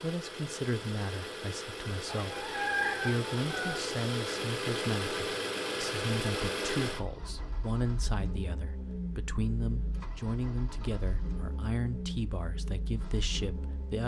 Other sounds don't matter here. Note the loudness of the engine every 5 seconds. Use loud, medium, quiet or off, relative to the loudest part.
loud, loud, medium.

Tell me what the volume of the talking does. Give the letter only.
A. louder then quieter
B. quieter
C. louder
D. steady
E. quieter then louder
D.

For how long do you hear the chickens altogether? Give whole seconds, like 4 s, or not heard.
2 s.